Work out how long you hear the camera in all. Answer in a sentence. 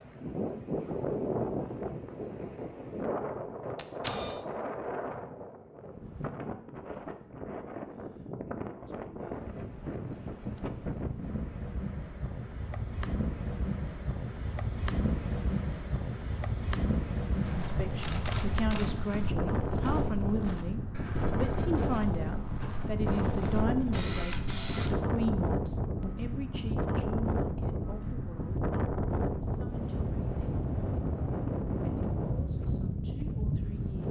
The camera can be heard for 3 seconds in total.